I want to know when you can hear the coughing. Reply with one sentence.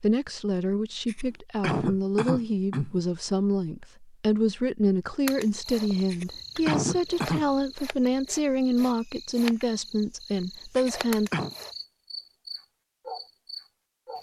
The coughing can be heard from 1.1 to 3.0 s, from 6.1 to 7.5 s and from 10.8 to 11.6 s.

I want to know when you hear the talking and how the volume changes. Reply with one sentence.
The talking can be heard from 0.0 to 11.3 s, at a steady volume.